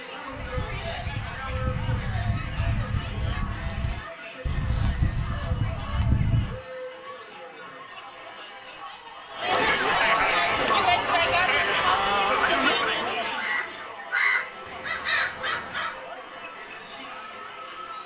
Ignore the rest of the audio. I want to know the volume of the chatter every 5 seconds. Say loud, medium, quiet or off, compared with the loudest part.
quiet, medium, loud, quiet.